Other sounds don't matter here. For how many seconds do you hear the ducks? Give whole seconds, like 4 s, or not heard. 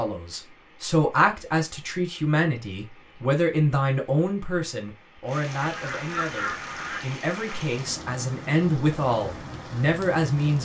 2 s.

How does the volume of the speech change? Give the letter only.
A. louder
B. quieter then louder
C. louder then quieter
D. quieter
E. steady
B.